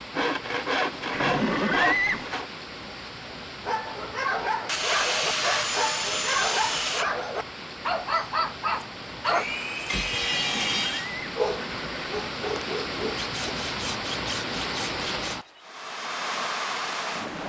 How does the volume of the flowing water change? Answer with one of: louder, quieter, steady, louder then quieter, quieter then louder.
louder.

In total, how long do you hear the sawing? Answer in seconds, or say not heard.
9 s.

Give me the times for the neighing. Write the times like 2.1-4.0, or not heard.
1.1-2.3, 10.2-12.1.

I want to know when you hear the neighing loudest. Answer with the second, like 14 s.
2 s.